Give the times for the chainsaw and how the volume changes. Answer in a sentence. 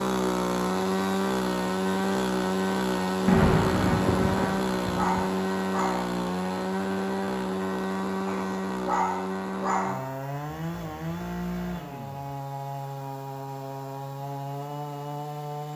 You can hear the chainsaw from 0.0 to 15.7 s, getting quieter.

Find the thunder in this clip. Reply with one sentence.
You can hear the thunder from 3.2 to 5.3 s.